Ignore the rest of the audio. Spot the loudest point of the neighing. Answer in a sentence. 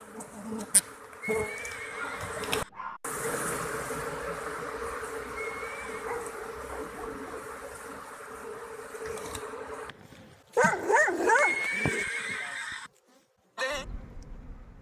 The volume of the neighing peaks at 12 seconds.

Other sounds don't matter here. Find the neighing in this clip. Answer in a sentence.
You can hear the neighing from 1.2 to 2.7 s, from 5.3 to 6.2 s and from 11.3 to 12.9 s.